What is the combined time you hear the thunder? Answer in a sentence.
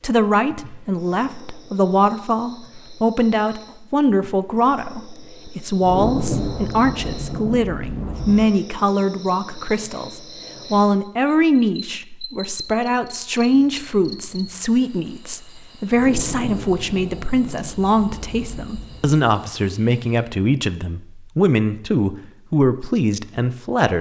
You can hear the thunder for 6 seconds altogether.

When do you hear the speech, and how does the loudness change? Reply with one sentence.
The speech can be heard from 0.0 to 23.9 s, at a steady volume.